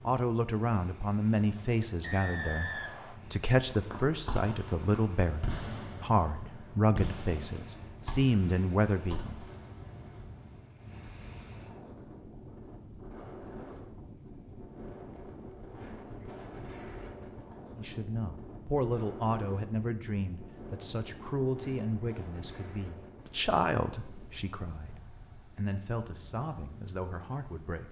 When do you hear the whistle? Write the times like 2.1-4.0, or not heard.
2.0-3.2.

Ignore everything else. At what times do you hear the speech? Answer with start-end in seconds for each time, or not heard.
0.1-9.4, 17.8-27.8.